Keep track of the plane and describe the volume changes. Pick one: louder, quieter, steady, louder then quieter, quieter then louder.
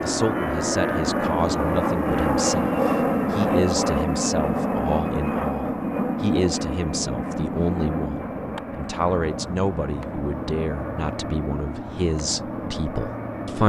quieter.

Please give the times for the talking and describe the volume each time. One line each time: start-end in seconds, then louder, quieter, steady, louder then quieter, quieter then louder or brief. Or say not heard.
0.0-13.6 steady.